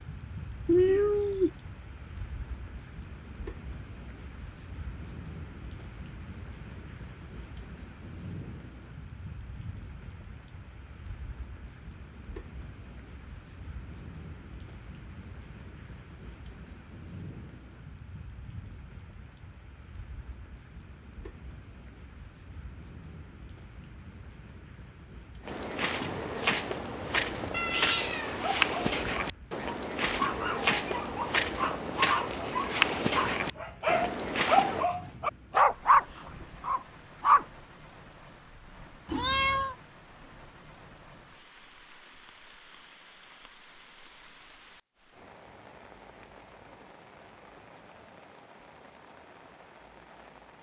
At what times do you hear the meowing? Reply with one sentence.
You can hear the meowing from 0.7 to 1.5 s, from 27.5 to 28.6 s and from 39.0 to 39.8 s.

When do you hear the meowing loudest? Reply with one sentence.
The volume of the meowing peaks at 1 second.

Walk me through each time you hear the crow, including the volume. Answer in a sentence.
You can't hear the crow here.